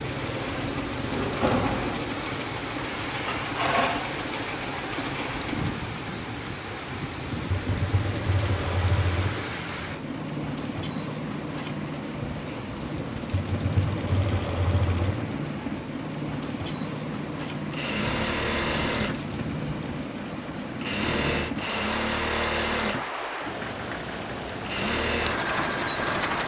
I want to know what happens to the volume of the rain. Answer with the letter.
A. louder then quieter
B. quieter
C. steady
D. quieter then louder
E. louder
C.